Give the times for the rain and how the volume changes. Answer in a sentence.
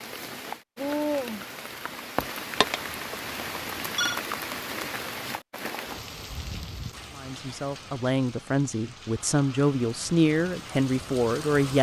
The rain can be heard from 0.0 to 11.7 s, getting quieter.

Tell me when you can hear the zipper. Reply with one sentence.
You can't hear the zipper here.